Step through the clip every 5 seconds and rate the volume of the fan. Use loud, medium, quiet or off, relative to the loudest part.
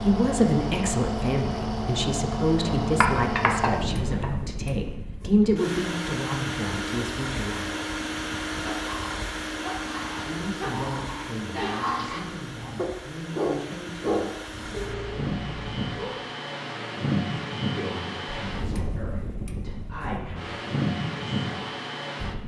loud, loud, medium, loud, loud.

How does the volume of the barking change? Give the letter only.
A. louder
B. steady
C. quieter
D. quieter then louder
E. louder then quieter
E.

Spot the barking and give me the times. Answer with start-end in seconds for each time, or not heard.
8.6-16.2.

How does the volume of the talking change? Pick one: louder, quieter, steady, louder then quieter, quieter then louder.
quieter.